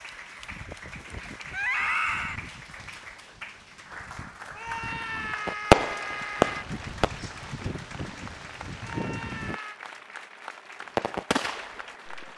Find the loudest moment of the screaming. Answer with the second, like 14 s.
2 s.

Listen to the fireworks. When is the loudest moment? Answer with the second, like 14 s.
6 s.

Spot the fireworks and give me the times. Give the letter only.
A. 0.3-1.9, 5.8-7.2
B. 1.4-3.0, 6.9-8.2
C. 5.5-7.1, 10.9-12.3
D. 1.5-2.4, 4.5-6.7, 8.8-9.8
C.